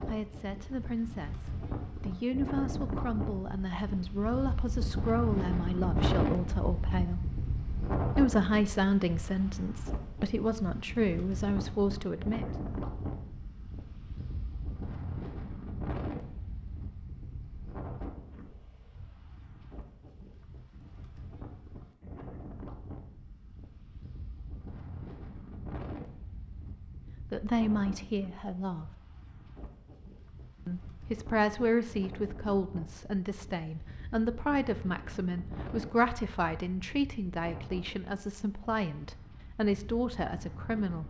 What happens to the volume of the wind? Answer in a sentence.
The loudness of the wind goes down.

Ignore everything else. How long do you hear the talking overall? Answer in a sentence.
You can hear the talking for 24 seconds altogether.